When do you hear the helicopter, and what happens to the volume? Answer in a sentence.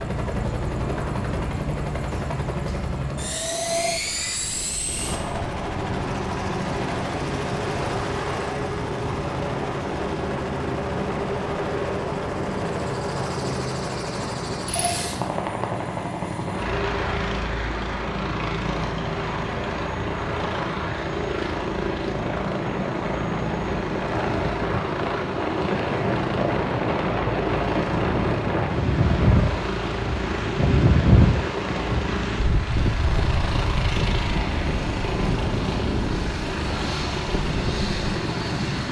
You can hear the helicopter from 0.0 to 38.8 s, at a steady volume.